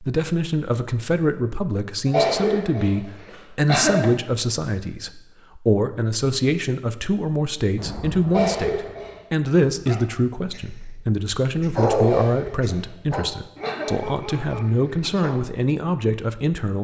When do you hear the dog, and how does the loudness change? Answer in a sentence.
The dog can be heard from 9.7 to 15.4 s, getting louder then quieter.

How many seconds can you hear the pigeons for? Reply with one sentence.
The pigeons can't be heard in this clip.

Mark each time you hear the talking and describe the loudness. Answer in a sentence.
The talking can be heard from 0.0 to 16.7 s, at a steady volume.